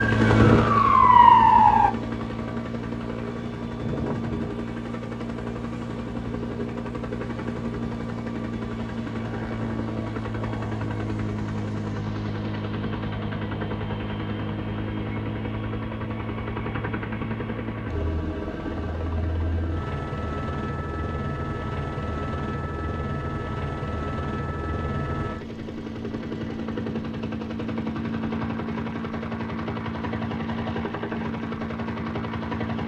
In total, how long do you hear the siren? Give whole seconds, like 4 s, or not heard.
2 s.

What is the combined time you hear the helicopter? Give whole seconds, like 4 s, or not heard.
33 s.